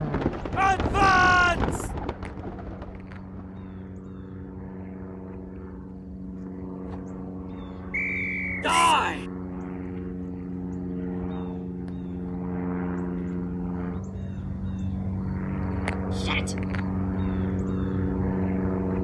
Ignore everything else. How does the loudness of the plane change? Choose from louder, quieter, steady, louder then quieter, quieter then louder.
louder.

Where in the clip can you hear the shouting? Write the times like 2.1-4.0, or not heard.
0.6-1.9, 8.6-9.2, 16.1-16.6.